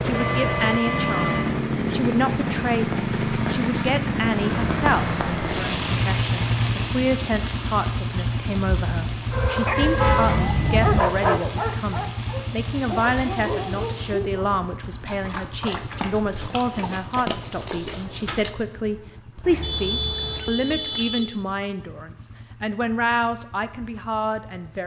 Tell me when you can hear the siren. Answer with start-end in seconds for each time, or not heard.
not heard.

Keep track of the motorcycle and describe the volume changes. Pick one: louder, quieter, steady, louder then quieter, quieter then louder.
quieter.